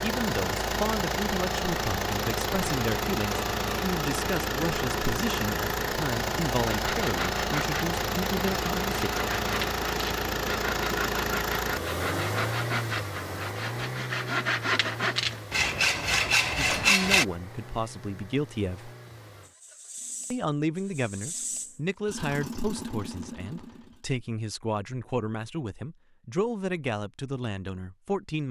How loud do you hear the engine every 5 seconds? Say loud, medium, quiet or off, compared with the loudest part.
loud, loud, loud, quiet, medium, off.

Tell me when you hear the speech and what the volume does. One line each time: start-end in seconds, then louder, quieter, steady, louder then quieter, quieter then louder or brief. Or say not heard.
0.0-9.1 steady
16.7-18.9 brief
20.3-28.4 steady.